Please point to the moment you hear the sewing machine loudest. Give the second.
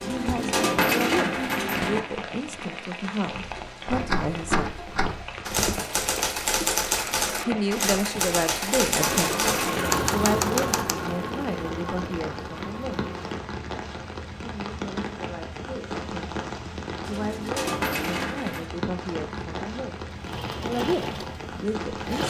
10 s.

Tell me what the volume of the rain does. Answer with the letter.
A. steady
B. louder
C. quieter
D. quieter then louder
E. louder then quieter
A.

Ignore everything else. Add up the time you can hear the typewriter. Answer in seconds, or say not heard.
7 s.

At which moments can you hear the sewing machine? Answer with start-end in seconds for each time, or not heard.
8.9-13.4, 20.1-22.2.